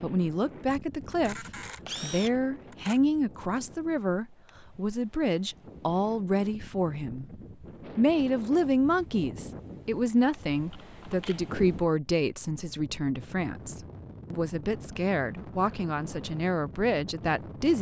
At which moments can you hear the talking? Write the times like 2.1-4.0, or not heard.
0.0-7.3, 8.0-17.7.